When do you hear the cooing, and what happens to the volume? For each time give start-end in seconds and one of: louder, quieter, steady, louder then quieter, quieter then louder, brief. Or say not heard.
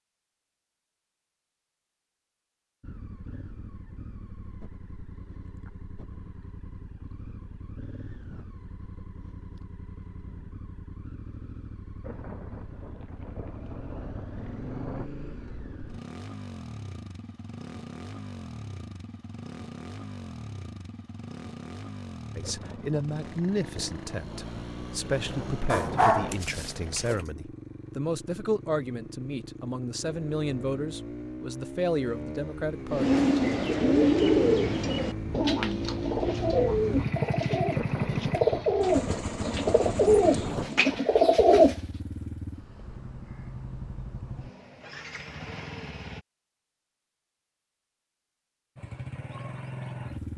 32.9-41.8 quieter then louder.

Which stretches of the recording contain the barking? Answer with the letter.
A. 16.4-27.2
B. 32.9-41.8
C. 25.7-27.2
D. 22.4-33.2
C.